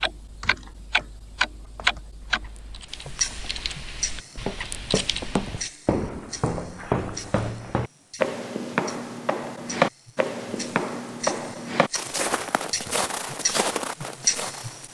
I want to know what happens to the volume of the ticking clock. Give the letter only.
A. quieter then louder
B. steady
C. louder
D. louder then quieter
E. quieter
A.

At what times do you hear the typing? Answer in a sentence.
The typing can be heard from 0.4 to 5.7 s.